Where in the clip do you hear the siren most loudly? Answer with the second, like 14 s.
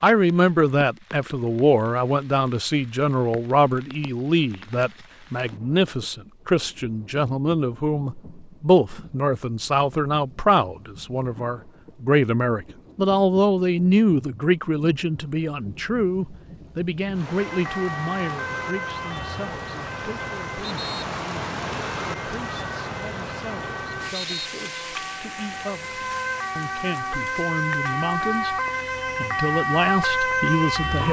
30 s.